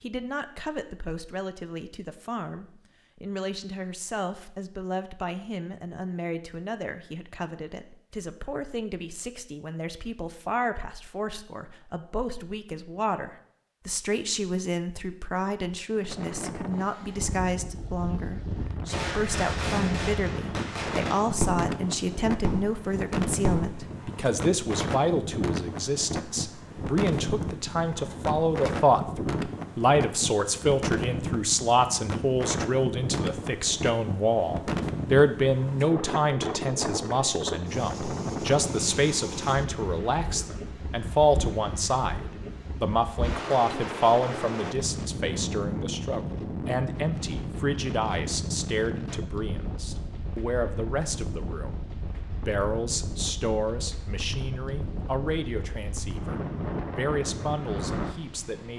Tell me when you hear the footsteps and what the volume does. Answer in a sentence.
You can't hear the footsteps here.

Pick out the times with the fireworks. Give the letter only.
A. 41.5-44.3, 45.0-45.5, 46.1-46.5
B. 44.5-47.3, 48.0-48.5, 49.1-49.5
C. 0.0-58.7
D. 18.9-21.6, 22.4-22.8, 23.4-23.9
D.